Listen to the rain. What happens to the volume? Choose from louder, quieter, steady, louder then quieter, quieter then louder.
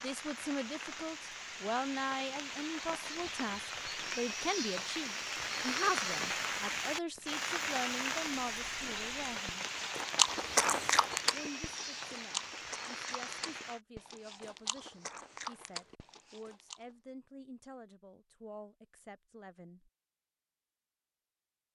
louder then quieter.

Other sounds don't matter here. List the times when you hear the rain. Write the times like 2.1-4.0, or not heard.
0.0-13.8.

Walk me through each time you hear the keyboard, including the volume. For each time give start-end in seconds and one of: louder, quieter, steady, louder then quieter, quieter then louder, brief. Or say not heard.
not heard.